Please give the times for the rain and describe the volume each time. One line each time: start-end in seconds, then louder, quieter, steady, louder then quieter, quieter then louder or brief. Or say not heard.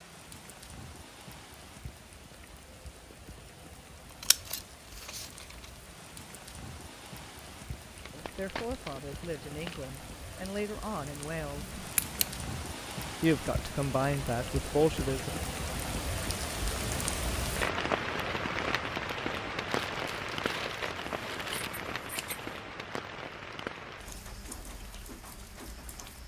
0.0-26.2 louder then quieter.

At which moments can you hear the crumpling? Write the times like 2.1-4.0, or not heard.
8.0-9.9, 19.6-21.7.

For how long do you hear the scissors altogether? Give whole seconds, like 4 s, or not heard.
4 s.